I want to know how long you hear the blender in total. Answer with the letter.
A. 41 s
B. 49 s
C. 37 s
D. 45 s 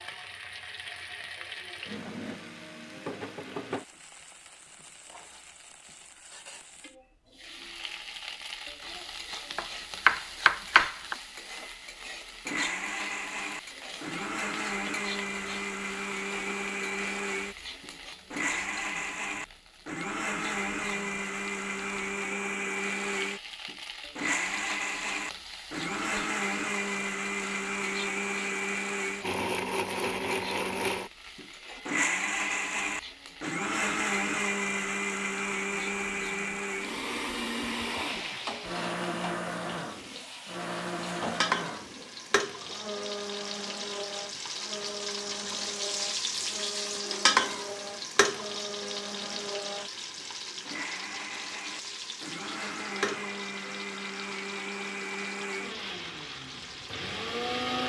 D.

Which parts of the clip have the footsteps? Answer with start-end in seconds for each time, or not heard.
not heard.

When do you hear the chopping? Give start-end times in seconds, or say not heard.
9.5-11.2.